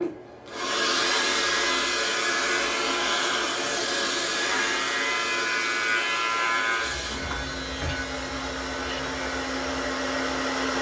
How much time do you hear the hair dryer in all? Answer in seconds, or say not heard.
11 s.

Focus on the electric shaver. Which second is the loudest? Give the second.
6 s.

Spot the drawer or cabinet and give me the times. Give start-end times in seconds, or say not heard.
7.1-8.0.